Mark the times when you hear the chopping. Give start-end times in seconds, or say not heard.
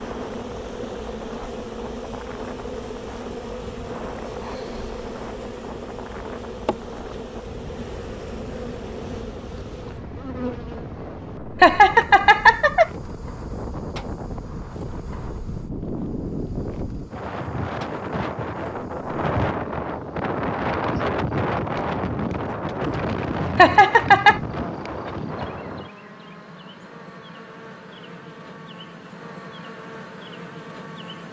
not heard.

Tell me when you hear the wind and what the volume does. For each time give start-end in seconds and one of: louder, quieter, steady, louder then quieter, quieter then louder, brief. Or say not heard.
0.0-25.9 louder.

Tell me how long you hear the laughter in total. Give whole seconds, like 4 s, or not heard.
2 s.